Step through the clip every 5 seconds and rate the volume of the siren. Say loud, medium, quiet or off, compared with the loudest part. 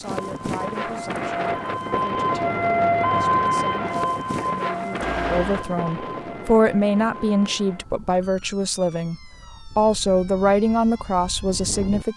loud, quiet, quiet.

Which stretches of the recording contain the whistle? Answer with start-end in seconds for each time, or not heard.
not heard.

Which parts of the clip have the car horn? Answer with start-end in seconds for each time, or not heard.
5.0-5.7.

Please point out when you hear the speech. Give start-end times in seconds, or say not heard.
0.0-9.2, 9.8-12.1.